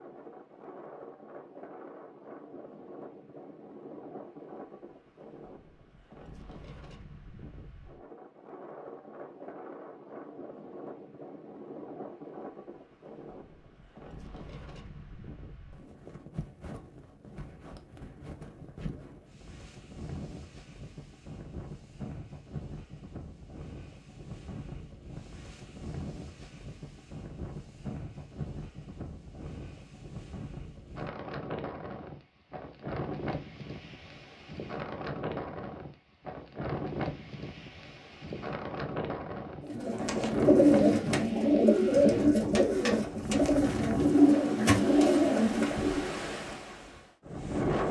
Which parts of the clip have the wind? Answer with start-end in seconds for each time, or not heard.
0.0-47.8.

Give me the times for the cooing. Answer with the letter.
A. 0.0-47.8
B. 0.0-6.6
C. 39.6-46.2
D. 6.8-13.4
C.